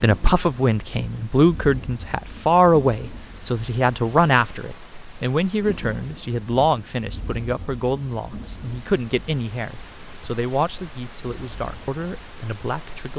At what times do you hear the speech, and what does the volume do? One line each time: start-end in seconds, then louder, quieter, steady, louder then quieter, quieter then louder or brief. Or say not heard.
0.0-13.1 quieter.